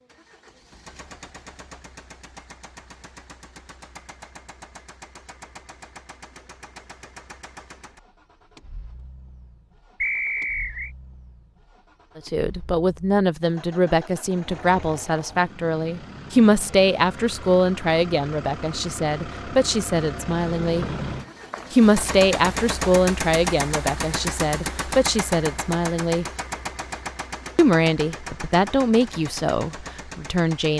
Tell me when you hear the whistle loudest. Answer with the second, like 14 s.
10 s.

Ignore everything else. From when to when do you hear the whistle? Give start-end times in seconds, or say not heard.
10.0-10.9, 20.8-22.1.